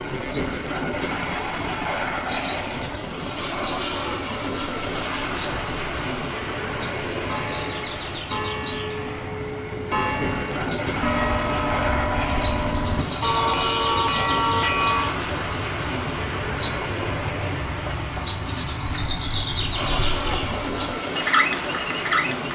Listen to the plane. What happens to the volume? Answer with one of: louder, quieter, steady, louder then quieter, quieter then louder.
steady.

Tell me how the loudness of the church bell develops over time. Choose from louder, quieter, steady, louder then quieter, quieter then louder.
louder.